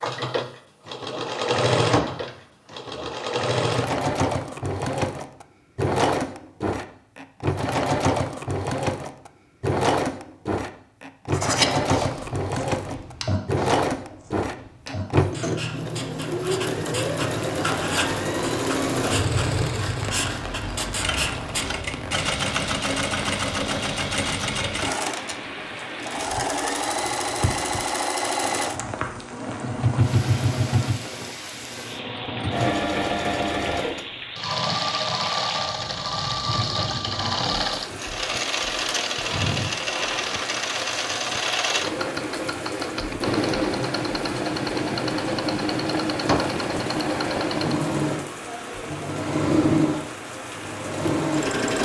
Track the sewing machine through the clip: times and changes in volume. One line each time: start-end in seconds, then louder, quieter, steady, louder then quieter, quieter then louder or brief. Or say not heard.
0.0-51.8 steady.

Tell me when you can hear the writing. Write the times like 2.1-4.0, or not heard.
11.3-21.8.